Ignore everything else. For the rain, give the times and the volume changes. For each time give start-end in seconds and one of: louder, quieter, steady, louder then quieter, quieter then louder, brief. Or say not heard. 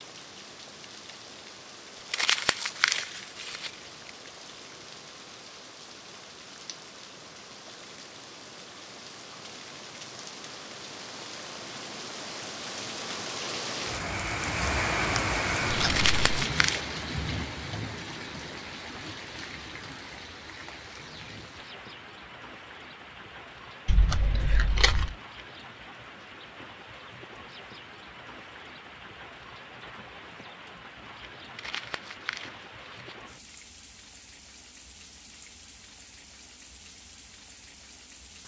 0.0-38.4 louder then quieter.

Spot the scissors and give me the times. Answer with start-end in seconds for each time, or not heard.
15.7-16.4, 23.9-25.1.